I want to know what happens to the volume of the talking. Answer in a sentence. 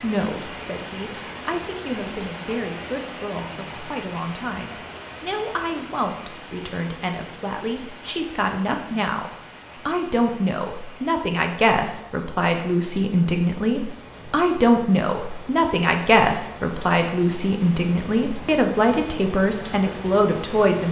The volume of the talking goes up.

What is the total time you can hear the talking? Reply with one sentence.
The talking can be heard for 21 seconds in total.